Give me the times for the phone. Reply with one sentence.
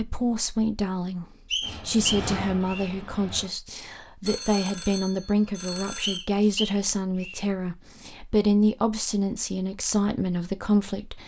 The phone can be heard from 4.2 to 6.2 s.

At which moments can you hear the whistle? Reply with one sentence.
You can hear the whistle from 1.5 to 2.9 s and from 6.0 to 7.4 s.